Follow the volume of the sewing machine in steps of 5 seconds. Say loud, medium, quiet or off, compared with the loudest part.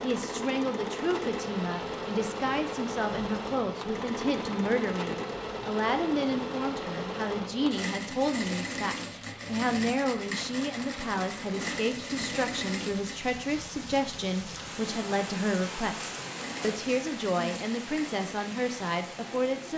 loud, loud, loud, medium.